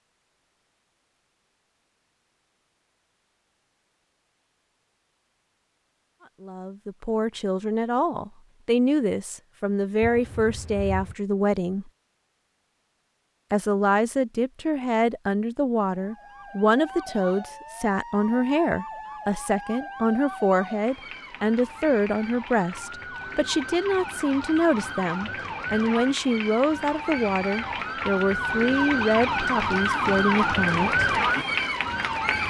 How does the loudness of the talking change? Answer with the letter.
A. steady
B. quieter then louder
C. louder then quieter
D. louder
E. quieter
A.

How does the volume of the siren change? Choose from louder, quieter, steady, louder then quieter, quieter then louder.
louder.